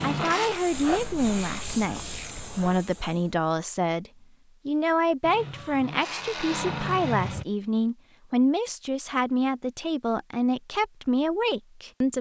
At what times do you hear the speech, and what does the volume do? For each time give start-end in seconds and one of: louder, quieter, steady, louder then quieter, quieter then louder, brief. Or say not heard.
0.0-12.1 steady.